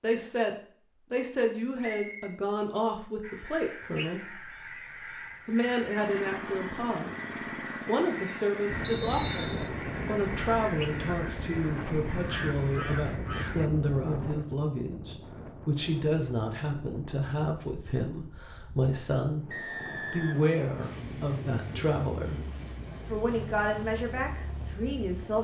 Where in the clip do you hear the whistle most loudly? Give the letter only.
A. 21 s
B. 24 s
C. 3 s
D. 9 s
D.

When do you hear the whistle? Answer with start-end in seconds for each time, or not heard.
1.8-2.4, 8.8-9.7, 19.5-20.9.